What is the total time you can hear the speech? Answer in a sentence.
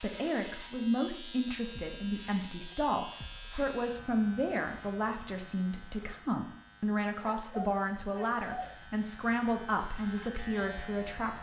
The speech can be heard for 11 seconds in total.